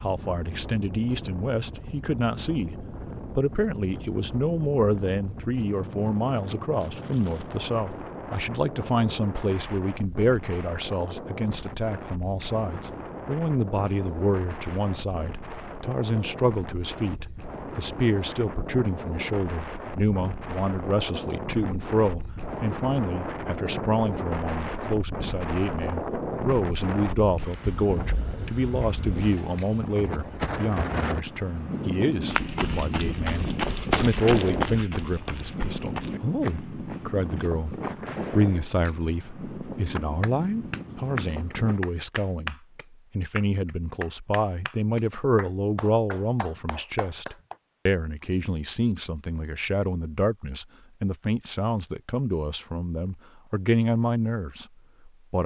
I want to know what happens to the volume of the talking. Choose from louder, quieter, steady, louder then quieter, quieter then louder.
steady.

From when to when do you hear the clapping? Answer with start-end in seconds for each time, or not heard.
40.0-47.5.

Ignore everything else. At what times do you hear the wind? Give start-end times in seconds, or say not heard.
0.0-41.8.